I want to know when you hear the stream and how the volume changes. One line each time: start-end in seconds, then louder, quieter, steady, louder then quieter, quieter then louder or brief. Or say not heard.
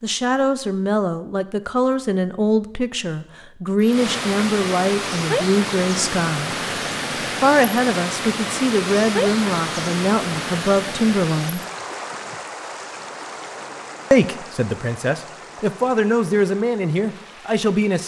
3.8-18.0 quieter.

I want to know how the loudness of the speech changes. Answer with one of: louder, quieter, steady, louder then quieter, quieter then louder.
steady.